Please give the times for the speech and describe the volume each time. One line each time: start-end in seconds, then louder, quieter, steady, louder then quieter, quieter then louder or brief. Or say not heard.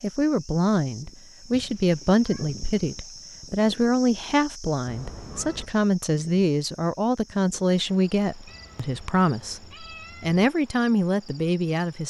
0.0-12.0 steady.